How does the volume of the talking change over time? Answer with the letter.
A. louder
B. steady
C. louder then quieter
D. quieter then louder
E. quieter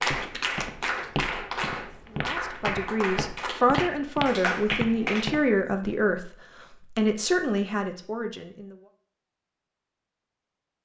B.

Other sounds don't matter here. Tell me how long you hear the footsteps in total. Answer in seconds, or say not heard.
6 s.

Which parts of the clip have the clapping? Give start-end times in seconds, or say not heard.
0.0-5.4.